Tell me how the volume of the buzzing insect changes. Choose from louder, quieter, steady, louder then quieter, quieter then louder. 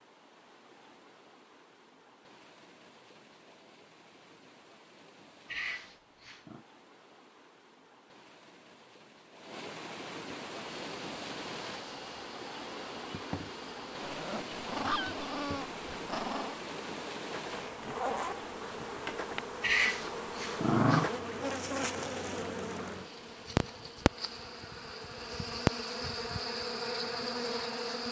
louder.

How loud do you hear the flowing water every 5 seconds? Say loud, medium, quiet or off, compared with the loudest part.
quiet, medium, loud, loud, medium, medium.